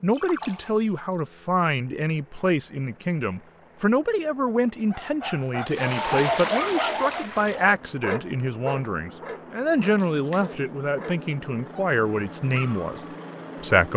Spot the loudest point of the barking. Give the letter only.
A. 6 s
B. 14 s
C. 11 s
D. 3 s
A.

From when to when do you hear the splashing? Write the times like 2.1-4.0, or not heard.
0.1-1.2, 5.7-7.7, 9.9-10.6.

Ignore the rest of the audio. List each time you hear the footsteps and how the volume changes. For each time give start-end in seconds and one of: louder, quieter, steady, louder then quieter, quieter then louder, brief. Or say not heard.
not heard.